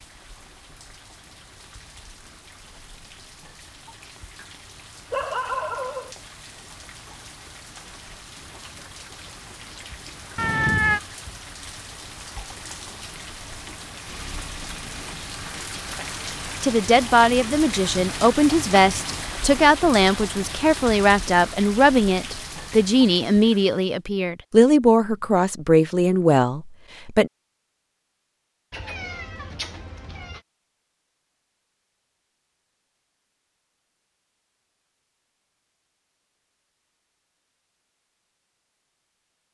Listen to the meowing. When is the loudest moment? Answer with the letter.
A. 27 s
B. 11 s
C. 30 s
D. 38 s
B.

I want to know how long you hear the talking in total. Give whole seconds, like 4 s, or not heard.
11 s.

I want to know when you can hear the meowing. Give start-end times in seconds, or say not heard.
10.3-11.0, 28.7-30.4.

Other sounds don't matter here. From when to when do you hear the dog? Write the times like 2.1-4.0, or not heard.
5.1-6.2.